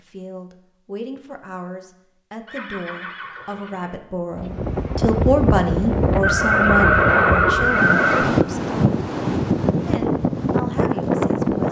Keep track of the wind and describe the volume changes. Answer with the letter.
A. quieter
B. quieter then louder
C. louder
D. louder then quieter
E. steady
E.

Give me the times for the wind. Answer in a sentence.
You can hear the wind from 4.3 to 11.6 s.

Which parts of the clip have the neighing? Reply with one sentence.
The neighing can be heard from 2.5 to 4.0 s and from 6.2 to 8.2 s.